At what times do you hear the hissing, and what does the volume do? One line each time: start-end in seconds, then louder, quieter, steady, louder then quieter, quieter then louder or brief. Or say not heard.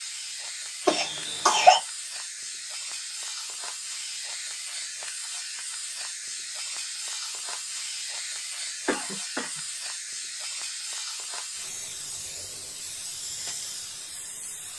0.0-14.7 steady.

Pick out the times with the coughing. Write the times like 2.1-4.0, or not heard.
0.8-1.8, 8.8-9.6.